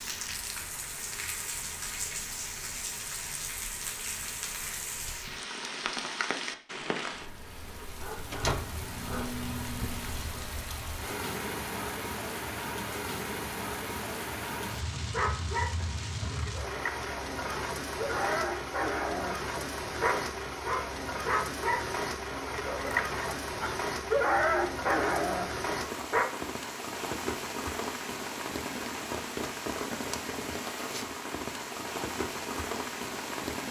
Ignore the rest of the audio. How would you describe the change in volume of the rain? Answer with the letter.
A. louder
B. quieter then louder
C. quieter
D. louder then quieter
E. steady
E.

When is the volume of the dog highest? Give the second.
24 s.